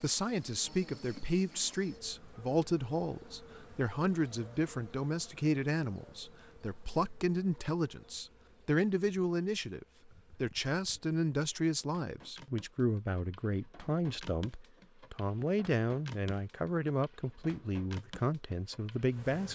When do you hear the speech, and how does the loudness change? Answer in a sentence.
The speech can be heard from 0.0 to 19.5 s, at a steady volume.